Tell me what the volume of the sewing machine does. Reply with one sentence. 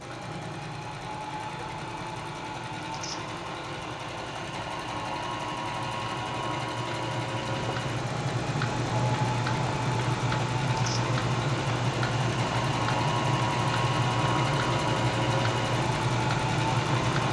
The volume of the sewing machine goes up.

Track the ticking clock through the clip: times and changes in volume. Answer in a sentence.
The ticking clock can be heard from 0.0 to 17.2 s, getting louder.